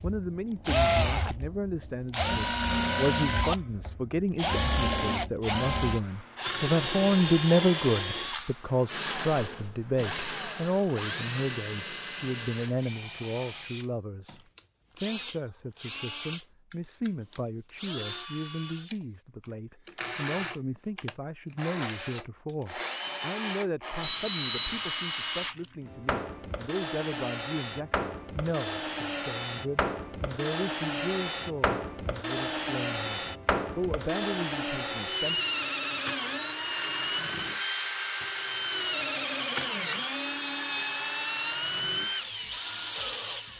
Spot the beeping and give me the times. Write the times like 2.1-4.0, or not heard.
24.0-24.8.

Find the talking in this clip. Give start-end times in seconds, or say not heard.
0.0-35.4.